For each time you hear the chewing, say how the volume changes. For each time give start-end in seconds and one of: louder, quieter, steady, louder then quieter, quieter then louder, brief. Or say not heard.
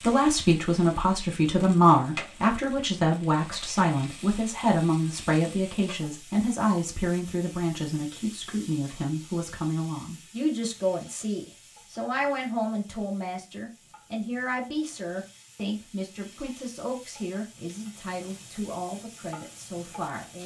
not heard.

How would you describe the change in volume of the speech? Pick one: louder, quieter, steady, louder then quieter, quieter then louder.
quieter.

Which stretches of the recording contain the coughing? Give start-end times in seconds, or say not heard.
not heard.